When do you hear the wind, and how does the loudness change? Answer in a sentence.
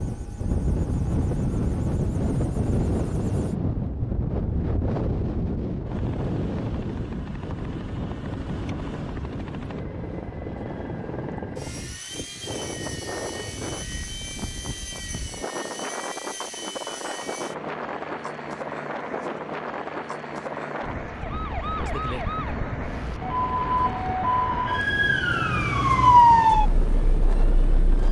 You can hear the wind from 0.0 to 28.0 s, getting quieter.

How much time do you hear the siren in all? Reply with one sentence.
The siren can be heard for 7 seconds in total.